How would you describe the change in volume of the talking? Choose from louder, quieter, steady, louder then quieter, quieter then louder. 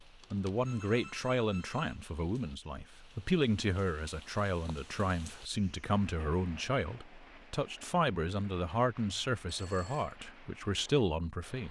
steady.